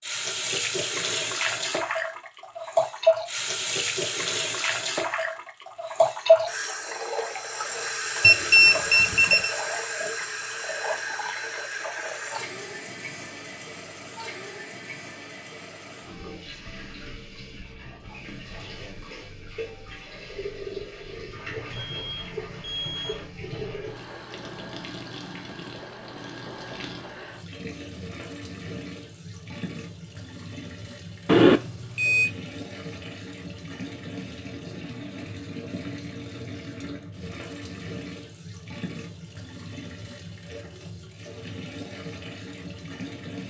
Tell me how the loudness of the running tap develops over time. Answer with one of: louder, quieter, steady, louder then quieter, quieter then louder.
quieter.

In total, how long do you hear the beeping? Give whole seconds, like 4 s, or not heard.
4 s.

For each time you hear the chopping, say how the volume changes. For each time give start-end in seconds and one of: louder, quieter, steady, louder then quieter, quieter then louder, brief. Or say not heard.
not heard.